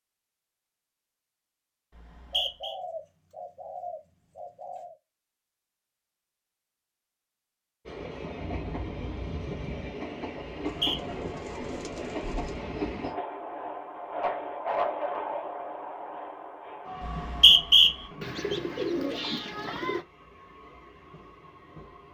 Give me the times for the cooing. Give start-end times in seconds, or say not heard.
2.3-5.0, 10.7-12.7, 18.2-20.1.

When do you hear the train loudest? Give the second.
15 s.